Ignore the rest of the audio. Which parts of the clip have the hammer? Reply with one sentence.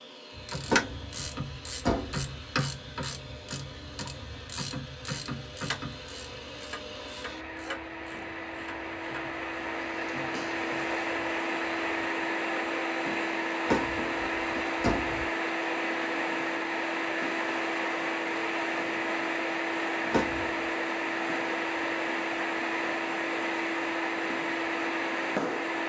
You can't hear the hammer here.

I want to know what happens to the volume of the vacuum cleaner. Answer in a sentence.
The loudness of the vacuum cleaner goes up.